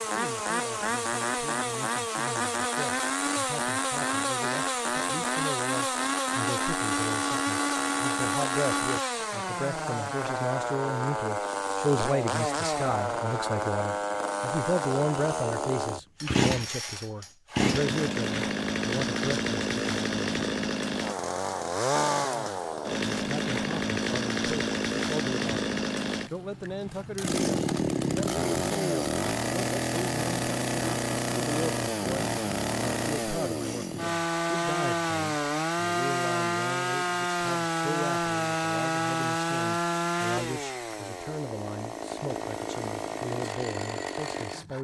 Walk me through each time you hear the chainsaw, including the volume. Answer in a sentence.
You can hear the chainsaw from 0.0 to 44.7 s, at a steady volume.